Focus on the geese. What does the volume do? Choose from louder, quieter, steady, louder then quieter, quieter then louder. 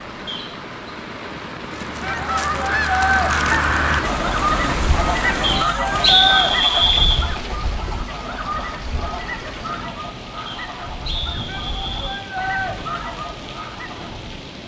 quieter.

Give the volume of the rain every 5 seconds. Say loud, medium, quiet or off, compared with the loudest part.
loud, loud, medium.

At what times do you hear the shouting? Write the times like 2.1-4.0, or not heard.
2.0-3.3, 5.2-6.5, 11.4-12.8.